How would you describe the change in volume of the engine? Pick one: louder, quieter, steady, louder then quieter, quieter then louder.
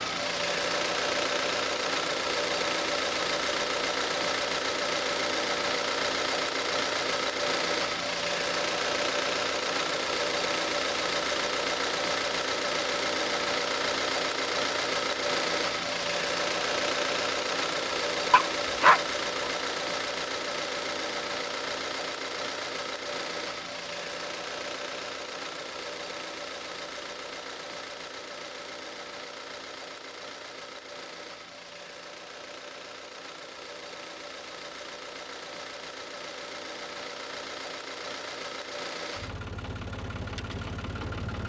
quieter.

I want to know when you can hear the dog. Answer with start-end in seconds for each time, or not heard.
18.3-19.5.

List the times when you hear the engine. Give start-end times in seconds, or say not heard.
0.0-41.4.